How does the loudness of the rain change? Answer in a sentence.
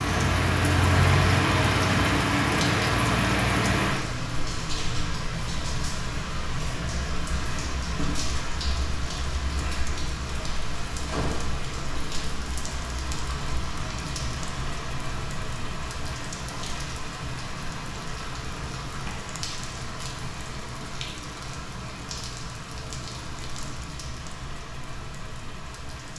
The loudness of the rain goes down.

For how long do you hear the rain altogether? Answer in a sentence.
You can hear the rain for 26 seconds altogether.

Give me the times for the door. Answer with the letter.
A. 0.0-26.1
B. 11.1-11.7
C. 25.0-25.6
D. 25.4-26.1
B.